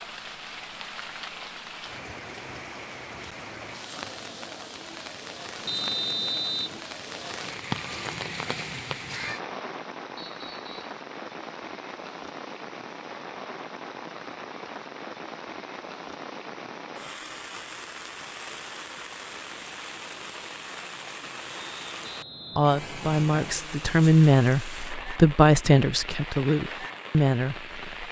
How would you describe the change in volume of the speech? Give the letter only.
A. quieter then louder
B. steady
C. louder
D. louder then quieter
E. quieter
D.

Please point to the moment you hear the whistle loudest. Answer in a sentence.
The loudest moment of the whistle is at 6 seconds.